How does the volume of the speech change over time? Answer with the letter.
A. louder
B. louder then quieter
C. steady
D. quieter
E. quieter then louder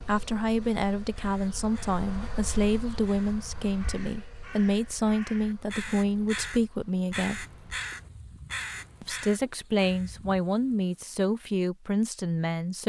C.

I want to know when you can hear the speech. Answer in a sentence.
The speech can be heard from 0.0 to 7.5 s and from 9.0 to 12.8 s.